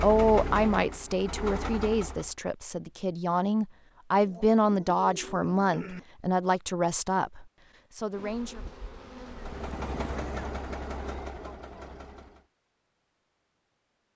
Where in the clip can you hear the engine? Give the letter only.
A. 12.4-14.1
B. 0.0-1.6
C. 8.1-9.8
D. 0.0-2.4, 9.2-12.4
D.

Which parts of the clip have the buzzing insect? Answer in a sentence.
You can hear the buzzing insect from 8.1 to 9.8 s.